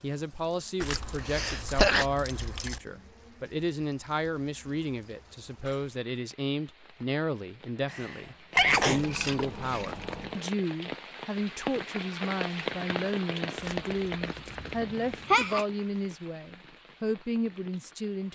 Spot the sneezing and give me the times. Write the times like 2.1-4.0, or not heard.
0.8-2.0, 7.8-9.1, 14.6-15.7.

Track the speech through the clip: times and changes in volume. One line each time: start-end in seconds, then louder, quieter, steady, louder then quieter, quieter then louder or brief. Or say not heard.
0.0-18.3 steady.